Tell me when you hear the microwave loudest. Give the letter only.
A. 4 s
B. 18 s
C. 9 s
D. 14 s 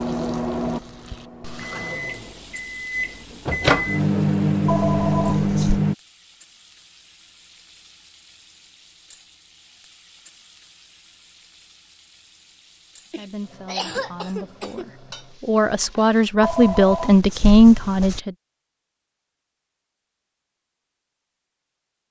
A.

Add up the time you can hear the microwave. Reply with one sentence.
You can hear the microwave for 6 seconds altogether.